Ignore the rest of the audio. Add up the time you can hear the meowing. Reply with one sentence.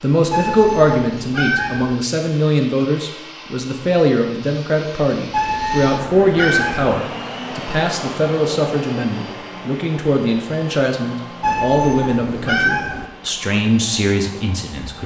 You can hear the meowing for 5 seconds altogether.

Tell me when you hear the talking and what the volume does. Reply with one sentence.
The talking can be heard from 0.0 to 15.0 s, at a steady volume.